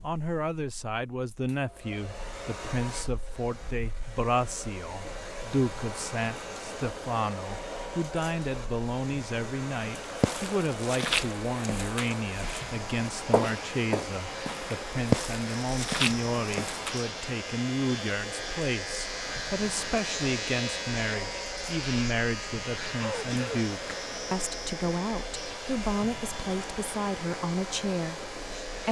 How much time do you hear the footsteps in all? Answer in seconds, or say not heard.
7 s.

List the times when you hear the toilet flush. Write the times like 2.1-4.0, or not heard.
not heard.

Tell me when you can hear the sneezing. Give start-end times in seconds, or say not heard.
22.9-23.6.